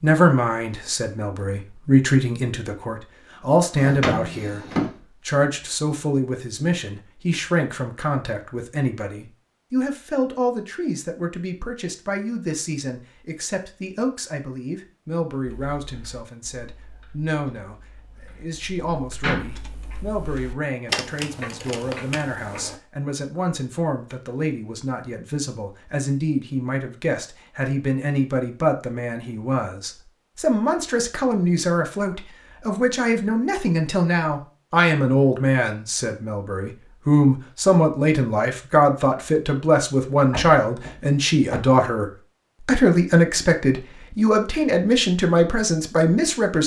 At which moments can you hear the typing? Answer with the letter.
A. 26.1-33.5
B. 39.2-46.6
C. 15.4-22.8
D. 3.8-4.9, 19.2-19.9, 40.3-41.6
C.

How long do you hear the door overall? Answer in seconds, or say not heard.
3 s.